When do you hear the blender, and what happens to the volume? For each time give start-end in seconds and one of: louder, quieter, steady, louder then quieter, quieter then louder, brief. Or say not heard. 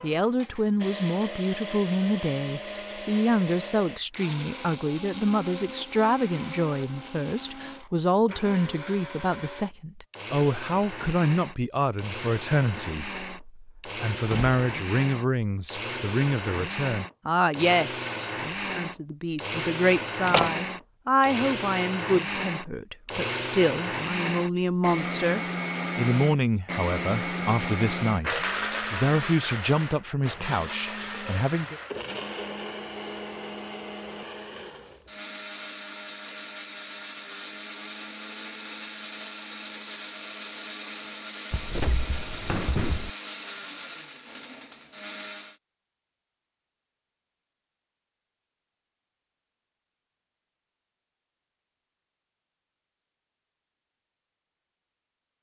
0.0-45.5 louder then quieter.